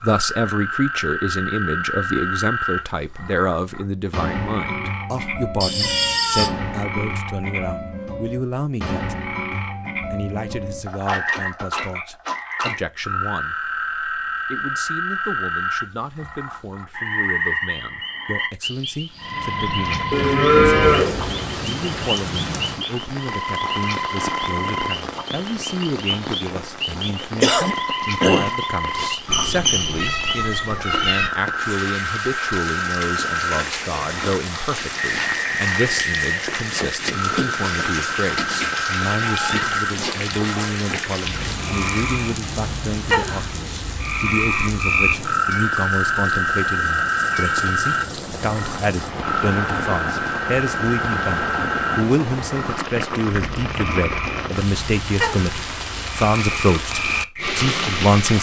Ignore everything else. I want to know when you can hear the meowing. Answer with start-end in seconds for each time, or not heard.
5.6-6.5, 29.2-31.3, 39.2-40.2.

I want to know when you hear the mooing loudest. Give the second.
21 s.